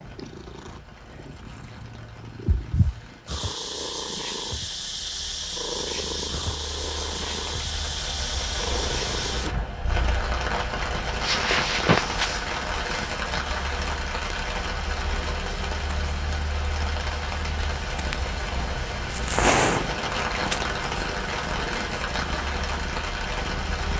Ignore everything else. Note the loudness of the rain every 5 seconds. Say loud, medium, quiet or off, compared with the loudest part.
quiet, medium, loud, loud, loud.